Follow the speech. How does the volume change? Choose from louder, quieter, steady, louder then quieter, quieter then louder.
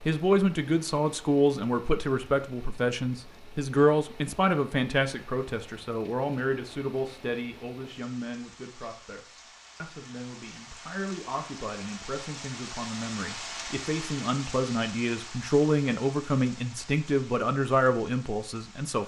quieter then louder.